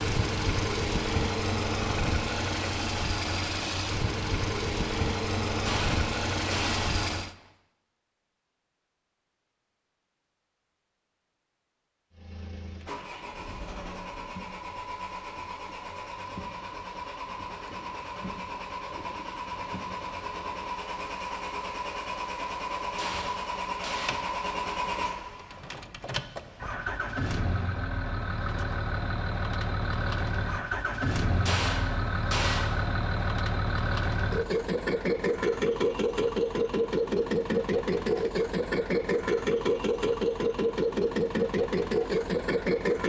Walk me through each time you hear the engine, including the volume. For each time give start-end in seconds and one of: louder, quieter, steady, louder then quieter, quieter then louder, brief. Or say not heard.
0.0-7.3 steady
12.1-43.0 louder.